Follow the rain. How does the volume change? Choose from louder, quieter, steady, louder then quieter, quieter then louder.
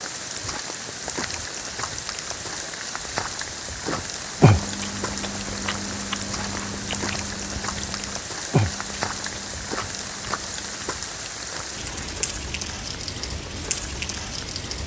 steady.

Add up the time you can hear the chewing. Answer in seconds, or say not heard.
7 s.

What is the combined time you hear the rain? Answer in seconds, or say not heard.
15 s.